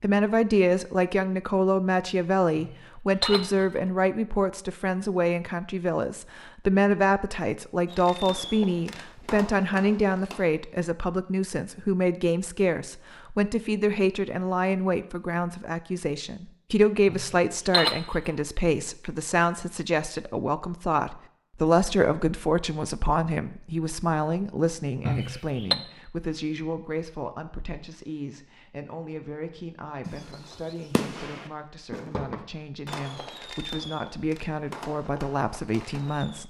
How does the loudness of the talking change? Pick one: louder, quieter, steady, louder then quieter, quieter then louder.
quieter.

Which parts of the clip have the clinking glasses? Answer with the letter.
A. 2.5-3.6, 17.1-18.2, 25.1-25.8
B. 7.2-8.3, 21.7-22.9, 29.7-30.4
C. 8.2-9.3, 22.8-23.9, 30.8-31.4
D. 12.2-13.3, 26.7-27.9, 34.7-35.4
A.